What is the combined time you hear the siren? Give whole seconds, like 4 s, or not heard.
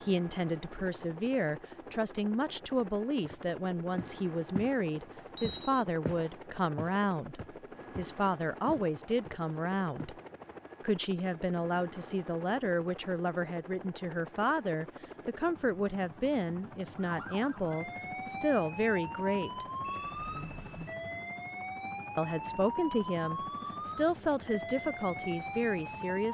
9 s.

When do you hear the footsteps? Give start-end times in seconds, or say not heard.
3.2-4.8, 5.4-10.2.